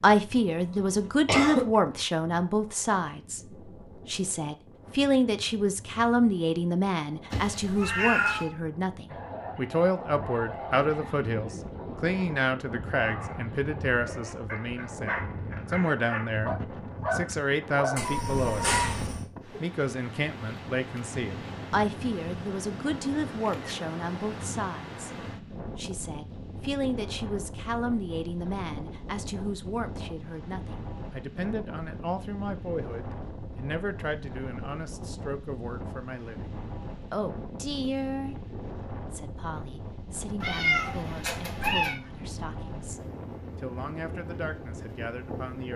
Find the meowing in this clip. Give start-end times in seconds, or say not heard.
7.3-8.5, 17.9-19.2, 40.4-42.0.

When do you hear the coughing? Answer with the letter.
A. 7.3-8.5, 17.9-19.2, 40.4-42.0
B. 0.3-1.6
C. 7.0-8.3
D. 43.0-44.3
B.